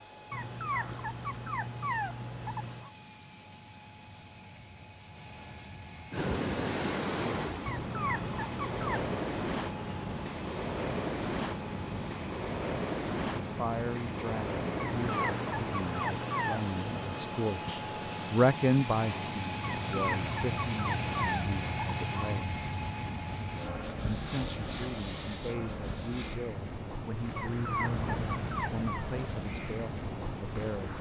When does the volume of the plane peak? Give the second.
21 s.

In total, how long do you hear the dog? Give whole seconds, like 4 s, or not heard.
11 s.